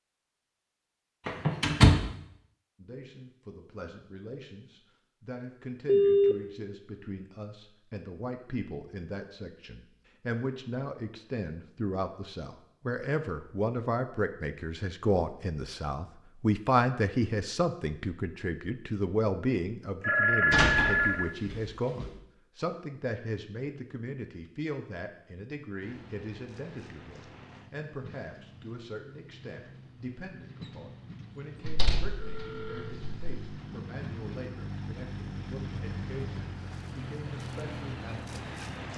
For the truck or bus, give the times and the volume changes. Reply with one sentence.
You can hear the truck or bus from 25.8 to 38.9 s, getting louder.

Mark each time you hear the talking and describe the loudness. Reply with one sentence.
The talking can be heard from 2.8 to 38.4 s, getting louder then quieter.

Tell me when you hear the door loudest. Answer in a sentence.
The loudest moment of the door is at 2 seconds.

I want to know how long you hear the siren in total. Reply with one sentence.
You can't hear the siren here.